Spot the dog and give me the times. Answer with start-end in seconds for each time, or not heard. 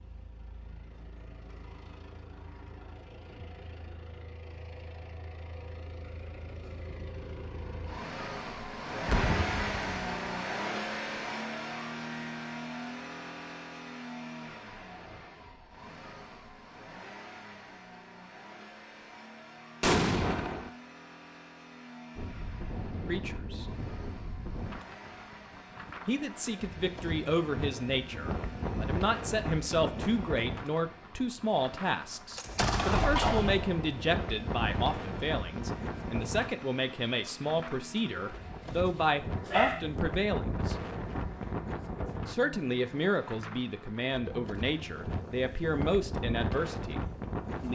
38.1-39.9.